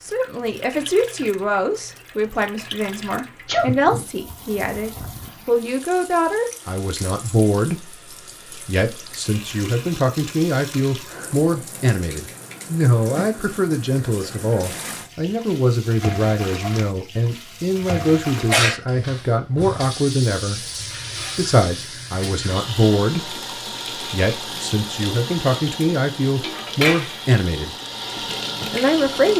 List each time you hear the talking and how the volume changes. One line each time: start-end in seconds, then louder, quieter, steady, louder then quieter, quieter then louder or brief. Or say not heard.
0.0-29.3 steady.